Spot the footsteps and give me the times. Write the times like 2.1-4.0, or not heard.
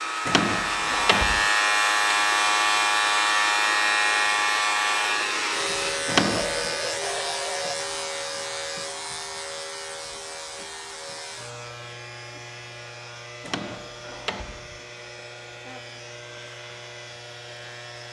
not heard.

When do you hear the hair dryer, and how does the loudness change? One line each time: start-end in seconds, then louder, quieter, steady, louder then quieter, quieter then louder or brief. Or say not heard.
0.0-18.0 quieter.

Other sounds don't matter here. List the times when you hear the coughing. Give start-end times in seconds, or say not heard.
not heard.